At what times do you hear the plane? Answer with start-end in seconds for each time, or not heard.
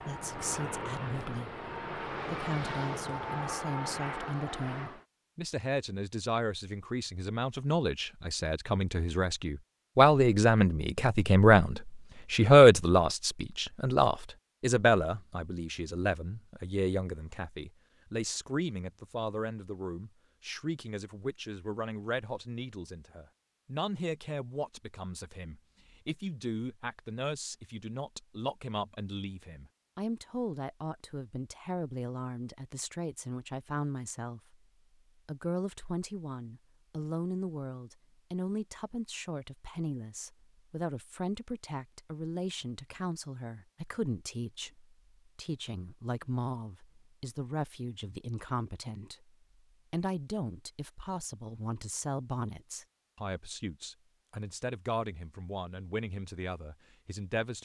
0.0-5.0.